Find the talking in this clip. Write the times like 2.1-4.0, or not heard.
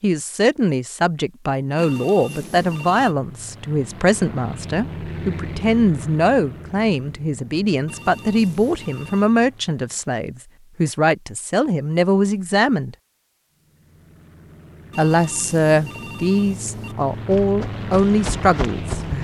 0.0-12.9, 14.9-19.1.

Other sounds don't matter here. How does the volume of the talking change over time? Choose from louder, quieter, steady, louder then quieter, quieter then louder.
steady.